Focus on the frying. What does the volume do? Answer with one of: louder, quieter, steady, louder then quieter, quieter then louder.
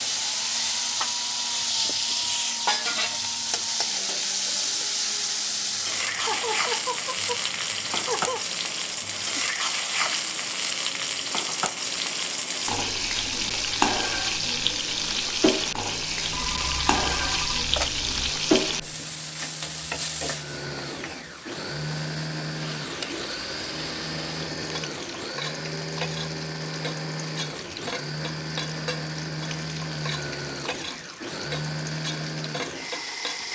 quieter.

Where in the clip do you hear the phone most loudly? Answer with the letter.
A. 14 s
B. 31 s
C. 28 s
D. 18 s
D.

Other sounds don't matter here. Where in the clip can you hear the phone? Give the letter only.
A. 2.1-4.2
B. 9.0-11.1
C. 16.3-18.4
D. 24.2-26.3
C.